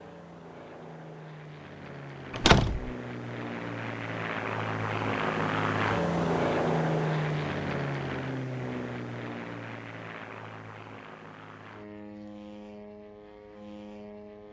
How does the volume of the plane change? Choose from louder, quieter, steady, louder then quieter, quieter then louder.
louder then quieter.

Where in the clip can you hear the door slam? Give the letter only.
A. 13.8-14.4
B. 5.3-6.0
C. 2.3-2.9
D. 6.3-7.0
C.